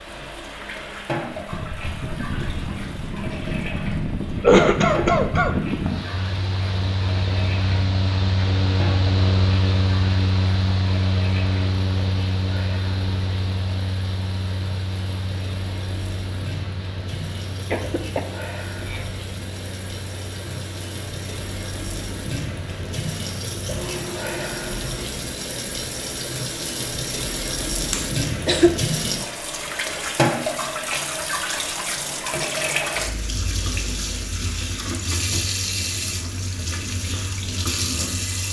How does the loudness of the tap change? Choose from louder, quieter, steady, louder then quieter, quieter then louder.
louder.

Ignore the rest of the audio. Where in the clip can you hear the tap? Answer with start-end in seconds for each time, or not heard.
0.0-38.4.